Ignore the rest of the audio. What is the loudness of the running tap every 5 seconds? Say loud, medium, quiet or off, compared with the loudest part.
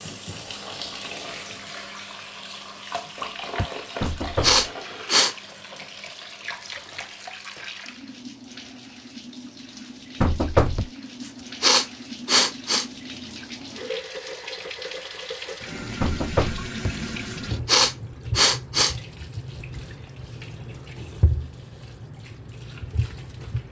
loud, medium, loud, loud, loud.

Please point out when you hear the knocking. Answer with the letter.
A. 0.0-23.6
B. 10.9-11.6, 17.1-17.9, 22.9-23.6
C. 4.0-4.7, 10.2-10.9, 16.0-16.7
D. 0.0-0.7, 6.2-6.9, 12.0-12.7
C.